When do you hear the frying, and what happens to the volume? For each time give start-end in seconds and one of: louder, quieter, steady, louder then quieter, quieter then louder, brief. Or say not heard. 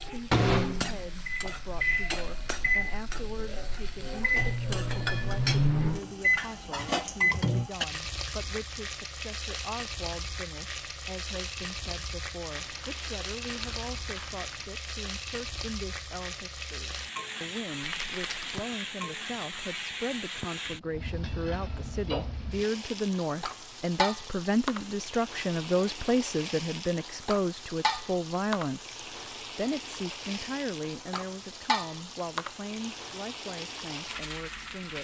0.0-34.9 steady.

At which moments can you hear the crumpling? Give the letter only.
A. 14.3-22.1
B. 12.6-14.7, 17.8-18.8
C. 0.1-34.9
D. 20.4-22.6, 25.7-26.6
B.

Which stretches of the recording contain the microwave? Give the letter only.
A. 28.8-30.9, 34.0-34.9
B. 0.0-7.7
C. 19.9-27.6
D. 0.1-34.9
B.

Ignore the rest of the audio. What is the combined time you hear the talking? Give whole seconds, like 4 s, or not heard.
35 s.